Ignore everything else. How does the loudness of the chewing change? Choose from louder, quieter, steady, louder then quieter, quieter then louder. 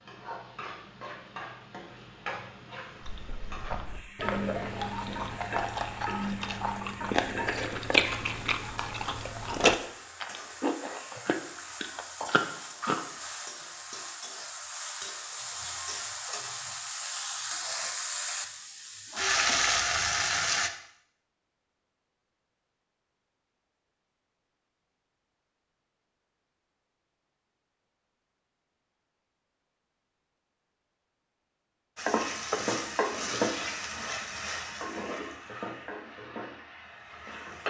louder then quieter.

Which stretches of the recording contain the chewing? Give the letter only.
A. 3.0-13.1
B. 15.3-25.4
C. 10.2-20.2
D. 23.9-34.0
A.